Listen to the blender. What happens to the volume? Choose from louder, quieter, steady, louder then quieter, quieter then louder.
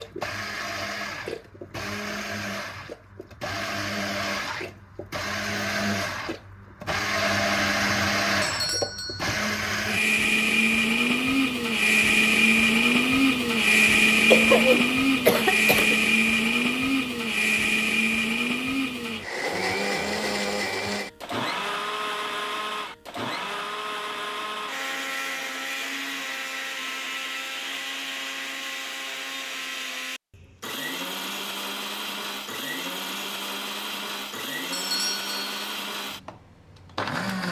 louder then quieter.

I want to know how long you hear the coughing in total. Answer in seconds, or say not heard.
2 s.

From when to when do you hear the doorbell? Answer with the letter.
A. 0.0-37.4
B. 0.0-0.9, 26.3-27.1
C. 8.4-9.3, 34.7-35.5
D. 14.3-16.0
C.